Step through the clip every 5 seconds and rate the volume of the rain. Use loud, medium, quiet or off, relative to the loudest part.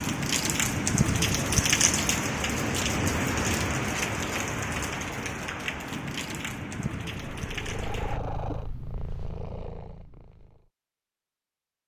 loud, medium, off.